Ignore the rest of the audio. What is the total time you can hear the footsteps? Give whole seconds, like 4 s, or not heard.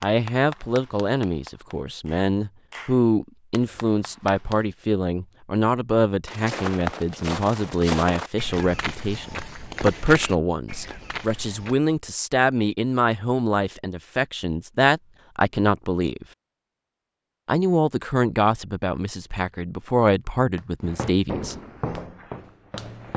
8 s.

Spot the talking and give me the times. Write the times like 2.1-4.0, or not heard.
0.0-16.2, 17.4-21.6.